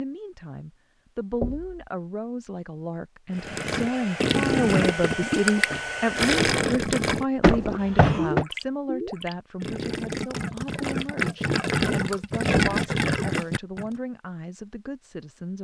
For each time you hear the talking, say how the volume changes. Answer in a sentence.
You can hear the talking from 0.0 to 15.5 s, getting louder then quieter.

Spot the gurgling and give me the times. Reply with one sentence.
You can hear the gurgling from 3.4 to 13.9 s.